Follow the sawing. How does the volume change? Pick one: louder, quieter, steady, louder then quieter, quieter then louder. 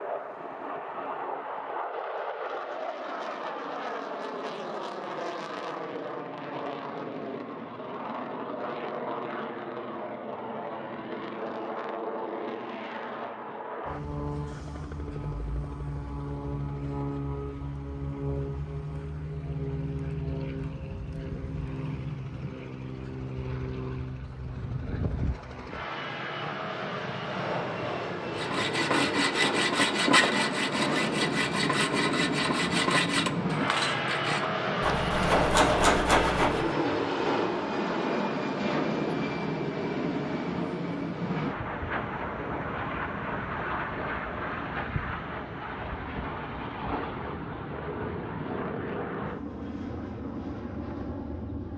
quieter then louder.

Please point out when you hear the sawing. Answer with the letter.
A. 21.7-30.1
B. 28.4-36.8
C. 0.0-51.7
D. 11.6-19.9
B.